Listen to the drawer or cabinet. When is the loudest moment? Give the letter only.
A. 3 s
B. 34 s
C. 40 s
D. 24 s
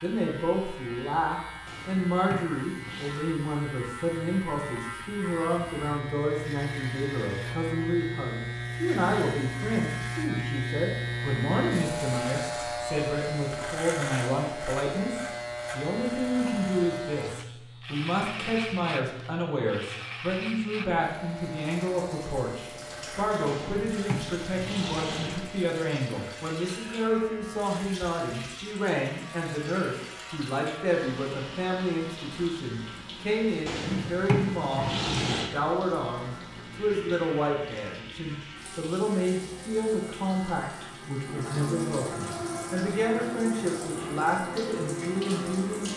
B.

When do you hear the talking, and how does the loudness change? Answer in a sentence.
The talking can be heard from 0.0 to 45.9 s, at a steady volume.